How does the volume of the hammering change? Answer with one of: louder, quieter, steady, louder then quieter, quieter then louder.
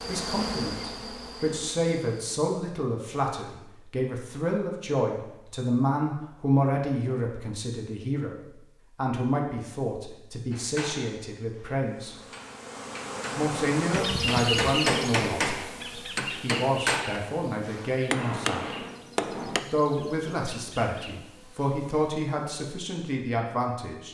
louder.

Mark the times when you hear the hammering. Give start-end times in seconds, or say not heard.
10.5-19.6.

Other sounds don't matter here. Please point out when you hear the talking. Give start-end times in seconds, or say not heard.
0.1-12.2, 13.3-15.6, 16.4-18.8, 19.6-24.0.